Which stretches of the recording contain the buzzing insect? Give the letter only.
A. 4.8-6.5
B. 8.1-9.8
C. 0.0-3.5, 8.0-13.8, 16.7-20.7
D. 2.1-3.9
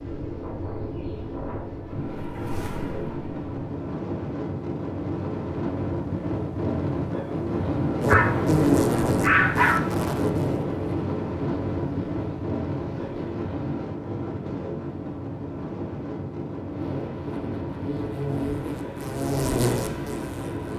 C.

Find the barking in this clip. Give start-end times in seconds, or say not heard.
8.1-9.8.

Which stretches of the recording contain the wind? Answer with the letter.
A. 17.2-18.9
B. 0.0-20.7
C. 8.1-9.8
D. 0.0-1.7
B.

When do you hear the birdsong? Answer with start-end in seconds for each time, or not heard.
not heard.